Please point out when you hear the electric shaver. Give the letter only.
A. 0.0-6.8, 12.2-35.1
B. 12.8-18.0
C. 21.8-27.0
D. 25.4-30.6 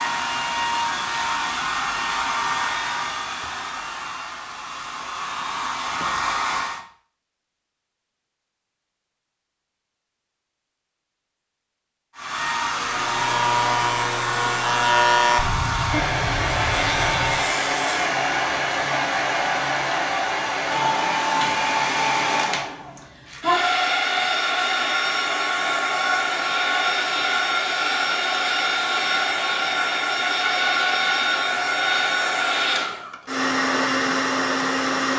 B.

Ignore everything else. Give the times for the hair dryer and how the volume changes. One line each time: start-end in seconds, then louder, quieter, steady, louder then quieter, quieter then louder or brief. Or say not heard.
0.0-6.8 quieter then louder
12.2-35.1 steady.